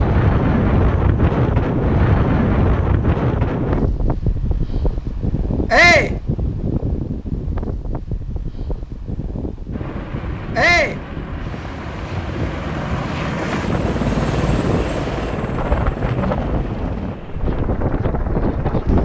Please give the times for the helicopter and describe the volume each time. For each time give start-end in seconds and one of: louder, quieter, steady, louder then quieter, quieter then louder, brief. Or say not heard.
9.7-19.0 louder then quieter.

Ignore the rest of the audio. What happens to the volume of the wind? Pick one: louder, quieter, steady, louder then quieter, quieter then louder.
quieter then louder.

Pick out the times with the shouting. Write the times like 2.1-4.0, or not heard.
5.7-6.2, 10.6-11.0.